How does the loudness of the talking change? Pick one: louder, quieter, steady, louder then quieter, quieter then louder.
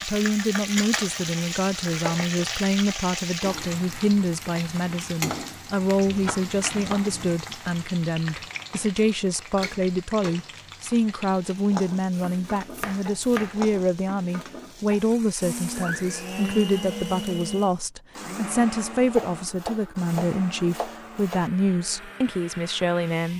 steady.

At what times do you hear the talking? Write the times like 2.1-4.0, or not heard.
0.0-23.3.